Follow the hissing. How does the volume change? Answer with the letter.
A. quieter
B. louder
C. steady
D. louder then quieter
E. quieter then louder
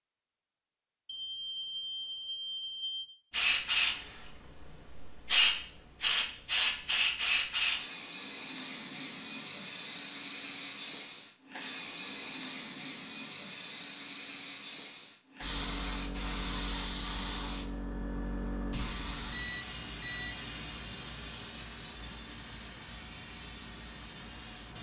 A.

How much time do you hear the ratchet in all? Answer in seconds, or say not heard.
not heard.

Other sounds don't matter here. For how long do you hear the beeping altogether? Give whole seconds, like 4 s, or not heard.
3 s.